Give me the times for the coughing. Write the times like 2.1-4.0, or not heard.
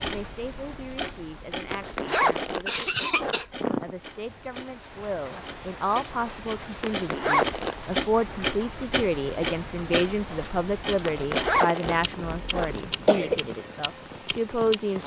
2.0-4.0, 11.8-13.4.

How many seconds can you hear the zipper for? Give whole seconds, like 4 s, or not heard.
5 s.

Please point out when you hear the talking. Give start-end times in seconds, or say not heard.
0.0-15.0.